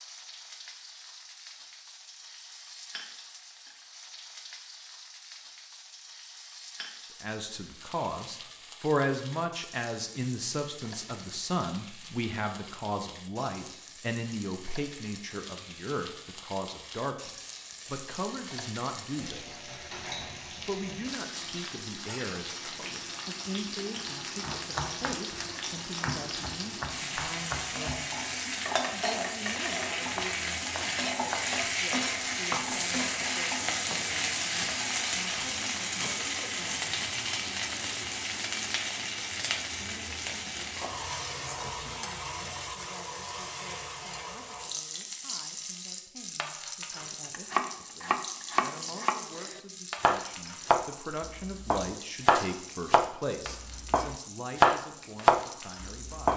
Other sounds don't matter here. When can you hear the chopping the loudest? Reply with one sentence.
The loudest moment of the chopping is at 55 seconds.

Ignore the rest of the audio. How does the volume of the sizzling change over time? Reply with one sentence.
The volume of the sizzling goes up, then down.